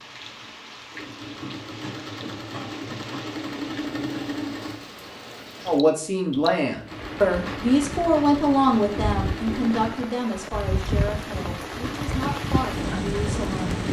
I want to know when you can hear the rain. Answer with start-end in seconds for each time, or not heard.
0.0-13.8.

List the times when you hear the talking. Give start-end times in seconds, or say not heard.
5.7-13.8.